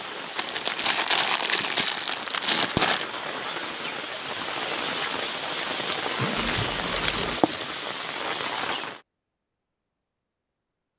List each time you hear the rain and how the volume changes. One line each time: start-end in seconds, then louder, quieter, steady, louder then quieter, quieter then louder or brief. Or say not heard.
0.0-9.0 louder.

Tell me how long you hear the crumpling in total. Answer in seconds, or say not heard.
4 s.